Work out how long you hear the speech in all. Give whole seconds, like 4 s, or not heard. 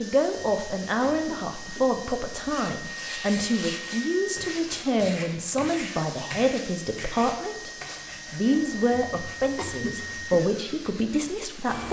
11 s.